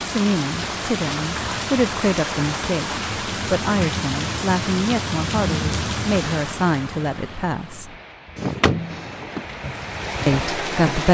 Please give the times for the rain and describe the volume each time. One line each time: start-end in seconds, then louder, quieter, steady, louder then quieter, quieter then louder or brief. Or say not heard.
0.0-11.0 quieter then louder.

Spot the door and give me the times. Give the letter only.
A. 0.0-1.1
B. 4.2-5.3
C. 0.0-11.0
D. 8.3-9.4
D.